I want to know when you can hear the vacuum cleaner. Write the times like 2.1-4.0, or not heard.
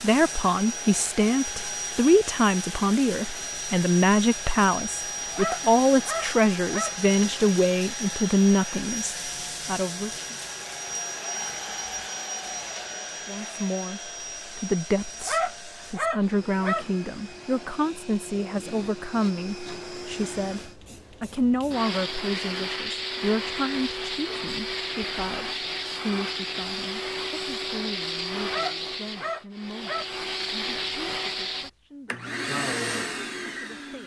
0.0-34.0.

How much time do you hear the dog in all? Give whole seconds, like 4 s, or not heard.
5 s.